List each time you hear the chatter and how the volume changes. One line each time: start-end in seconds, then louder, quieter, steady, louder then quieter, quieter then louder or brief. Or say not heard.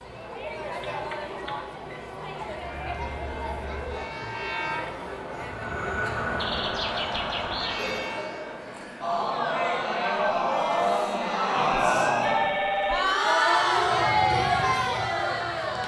0.0-15.8 louder.